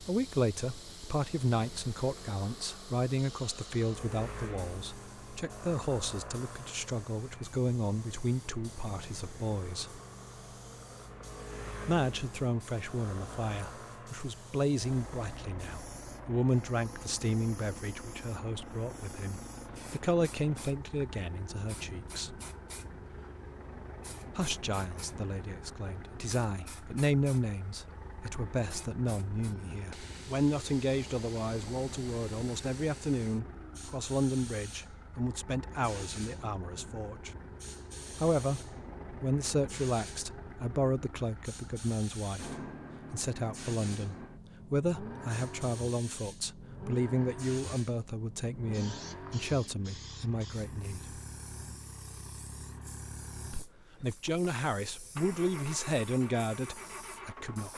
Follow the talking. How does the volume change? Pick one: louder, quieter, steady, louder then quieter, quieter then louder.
steady.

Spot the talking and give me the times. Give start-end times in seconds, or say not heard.
0.0-10.0, 11.8-22.4, 24.4-37.3, 38.2-51.1, 53.5-57.7.